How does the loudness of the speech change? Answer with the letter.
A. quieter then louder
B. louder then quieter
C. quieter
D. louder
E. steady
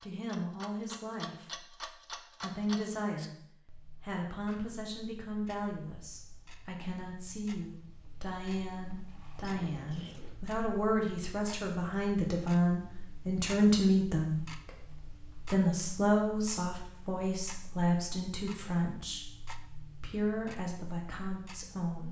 B.